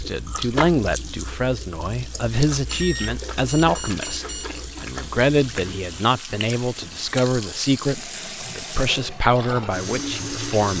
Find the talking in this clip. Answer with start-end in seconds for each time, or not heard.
0.0-10.7.